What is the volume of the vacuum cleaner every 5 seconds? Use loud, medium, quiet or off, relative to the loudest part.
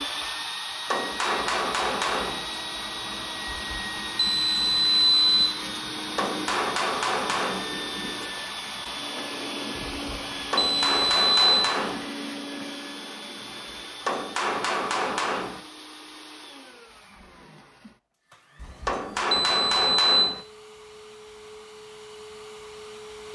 loud, loud, loud, quiet, medium.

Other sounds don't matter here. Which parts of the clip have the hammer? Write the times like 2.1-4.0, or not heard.
0.8-2.5, 6.2-7.7, 10.5-12.1, 14.1-15.6, 18.9-20.4.